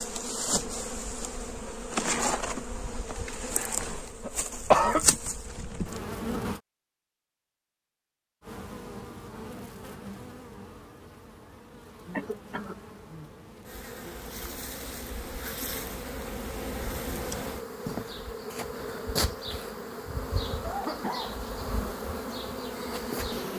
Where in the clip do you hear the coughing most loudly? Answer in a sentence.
The volume of the coughing peaks at 5 seconds.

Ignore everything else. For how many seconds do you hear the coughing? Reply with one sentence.
You can hear the coughing for 2 seconds altogether.